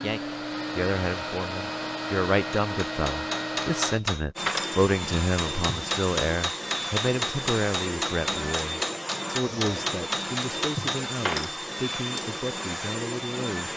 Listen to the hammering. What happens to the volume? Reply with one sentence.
The loudness of the hammering stays about the same.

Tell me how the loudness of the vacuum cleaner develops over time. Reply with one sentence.
The volume of the vacuum cleaner stays about the same.